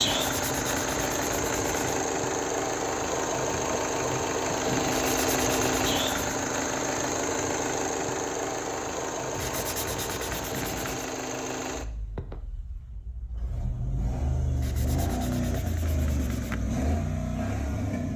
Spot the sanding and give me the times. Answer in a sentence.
You can hear the sanding from 0.0 to 2.0 s, from 4.8 to 6.3 s, from 9.3 to 11.2 s and from 14.6 to 16.6 s.